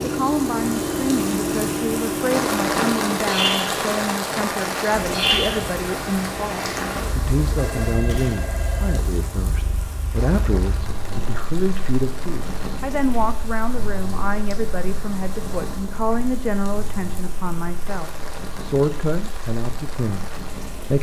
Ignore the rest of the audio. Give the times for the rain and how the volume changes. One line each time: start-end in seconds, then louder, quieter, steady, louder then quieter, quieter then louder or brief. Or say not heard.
0.0-20.9 quieter.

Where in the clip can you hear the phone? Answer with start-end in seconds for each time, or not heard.
7.5-9.1.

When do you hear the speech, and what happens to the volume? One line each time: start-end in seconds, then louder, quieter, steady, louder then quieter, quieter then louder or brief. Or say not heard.
0.0-20.9 steady.